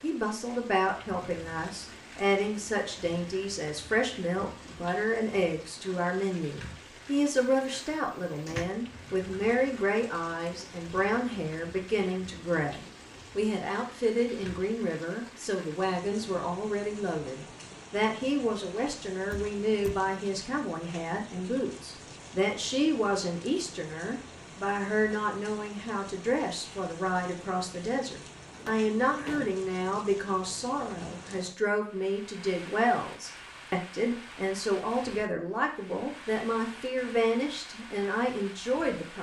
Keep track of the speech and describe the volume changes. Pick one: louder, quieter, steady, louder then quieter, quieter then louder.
steady.